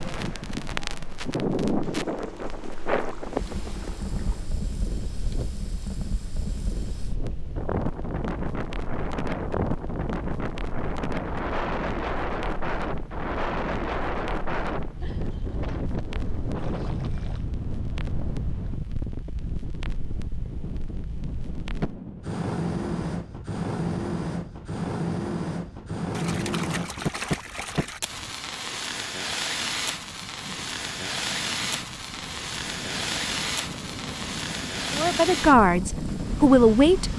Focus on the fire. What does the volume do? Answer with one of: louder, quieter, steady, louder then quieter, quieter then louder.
quieter then louder.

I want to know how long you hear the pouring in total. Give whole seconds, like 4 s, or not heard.
6 s.